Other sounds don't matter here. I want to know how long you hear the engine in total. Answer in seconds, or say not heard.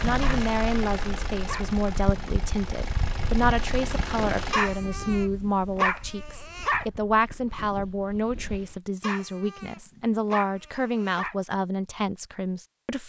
5 s.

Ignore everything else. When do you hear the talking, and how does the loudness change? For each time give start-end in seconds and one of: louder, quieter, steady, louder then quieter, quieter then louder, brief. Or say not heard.
0.0-13.0 steady.